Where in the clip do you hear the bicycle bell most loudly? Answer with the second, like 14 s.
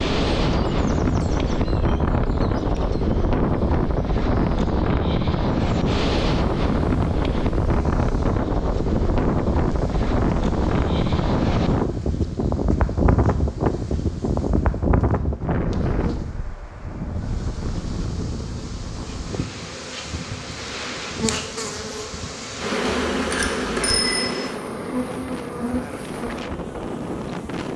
24 s.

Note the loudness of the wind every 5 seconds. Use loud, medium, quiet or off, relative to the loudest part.
loud, loud, loud, medium, quiet, medium.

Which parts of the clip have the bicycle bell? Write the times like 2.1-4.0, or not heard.
22.8-24.4.